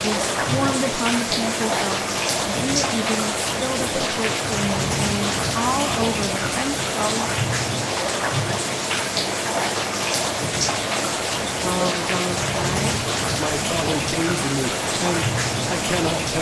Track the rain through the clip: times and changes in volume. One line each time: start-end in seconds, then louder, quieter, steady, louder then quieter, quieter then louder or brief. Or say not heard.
0.0-16.3 steady.